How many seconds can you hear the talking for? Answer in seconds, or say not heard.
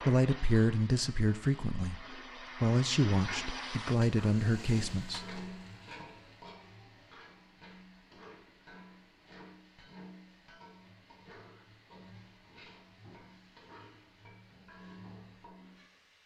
5 s.